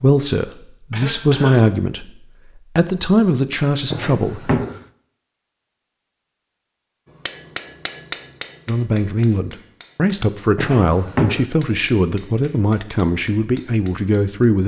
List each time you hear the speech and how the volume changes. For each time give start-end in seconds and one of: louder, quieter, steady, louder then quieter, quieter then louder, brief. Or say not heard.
0.0-2.1 brief
2.8-4.7 brief
8.7-14.6 steady.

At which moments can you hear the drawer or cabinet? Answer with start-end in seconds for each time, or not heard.
3.9-4.8, 10.6-11.4.